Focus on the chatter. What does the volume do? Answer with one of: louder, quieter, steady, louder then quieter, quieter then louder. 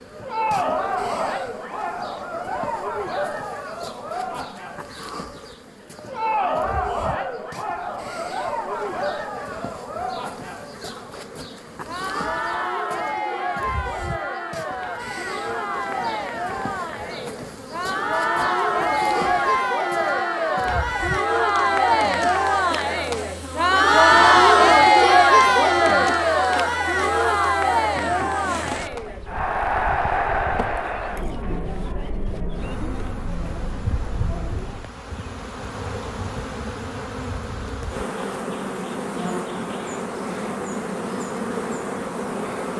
louder then quieter.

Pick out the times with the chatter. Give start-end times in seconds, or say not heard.
0.0-34.9.